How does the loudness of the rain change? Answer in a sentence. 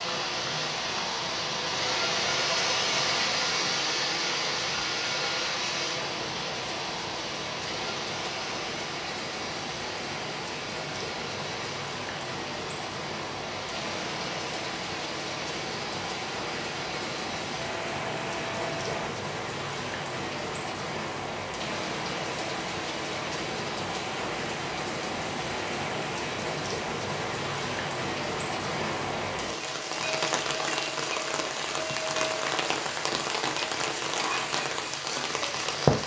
The volume of the rain goes up.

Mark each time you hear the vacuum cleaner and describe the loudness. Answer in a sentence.
You can hear the vacuum cleaner from 0.0 to 19.2 s, getting quieter.